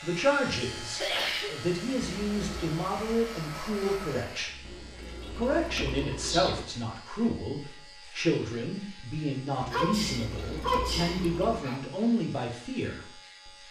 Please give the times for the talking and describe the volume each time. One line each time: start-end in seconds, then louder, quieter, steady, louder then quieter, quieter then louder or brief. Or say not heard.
0.0-13.6 steady.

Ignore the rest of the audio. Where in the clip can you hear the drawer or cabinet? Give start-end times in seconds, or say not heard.
not heard.